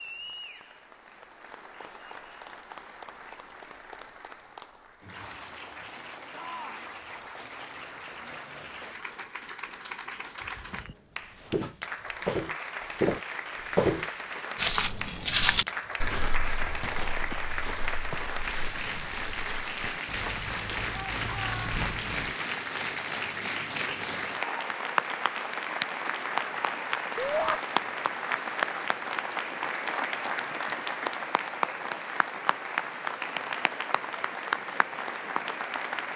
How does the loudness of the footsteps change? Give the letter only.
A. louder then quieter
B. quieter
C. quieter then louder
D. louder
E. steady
A.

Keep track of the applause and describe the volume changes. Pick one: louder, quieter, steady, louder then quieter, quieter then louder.
louder.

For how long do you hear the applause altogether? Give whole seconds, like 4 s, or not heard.
36 s.